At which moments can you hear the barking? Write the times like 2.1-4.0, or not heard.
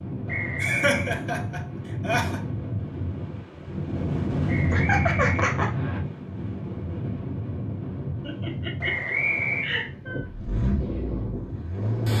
not heard.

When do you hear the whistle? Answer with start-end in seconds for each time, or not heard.
0.2-1.1, 4.5-6.0, 8.8-9.8.